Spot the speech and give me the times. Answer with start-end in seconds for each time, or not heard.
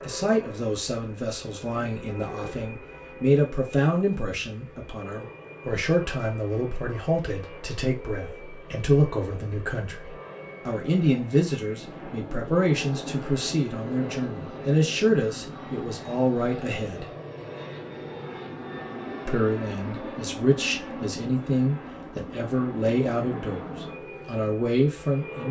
0.0-17.1, 19.2-25.4.